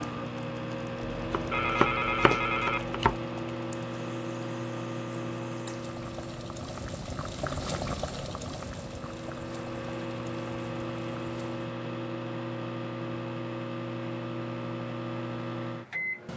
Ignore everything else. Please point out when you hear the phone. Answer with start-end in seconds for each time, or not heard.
1.5-2.9.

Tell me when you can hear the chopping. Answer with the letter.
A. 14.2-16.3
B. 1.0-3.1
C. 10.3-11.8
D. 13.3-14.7
B.